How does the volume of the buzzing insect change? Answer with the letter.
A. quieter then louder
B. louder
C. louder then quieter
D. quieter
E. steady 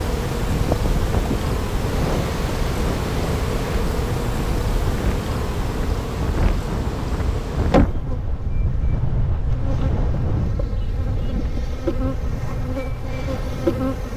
A.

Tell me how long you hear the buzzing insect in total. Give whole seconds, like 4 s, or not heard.
14 s.